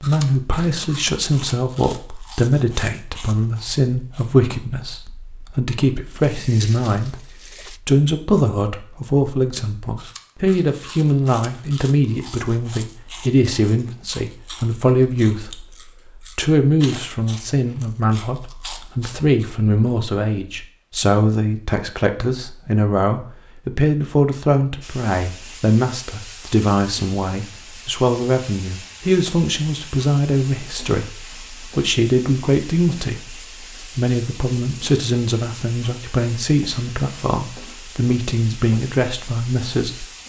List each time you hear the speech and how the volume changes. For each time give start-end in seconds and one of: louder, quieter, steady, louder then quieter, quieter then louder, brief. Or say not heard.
0.0-40.0 steady.